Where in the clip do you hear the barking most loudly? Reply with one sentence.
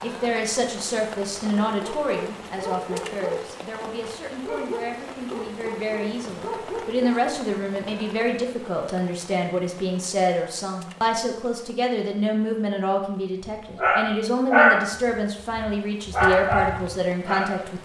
The volume of the barking peaks at 15 seconds.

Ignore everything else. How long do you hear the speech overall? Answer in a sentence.
You can hear the speech for 18 seconds altogether.